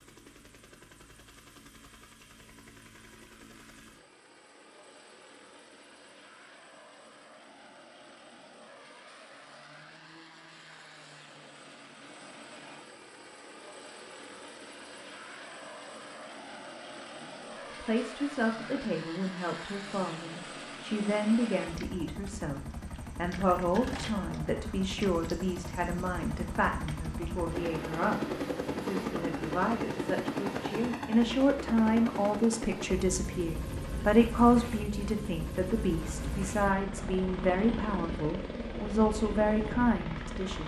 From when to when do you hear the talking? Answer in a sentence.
You can hear the talking from 17.2 to 40.6 s.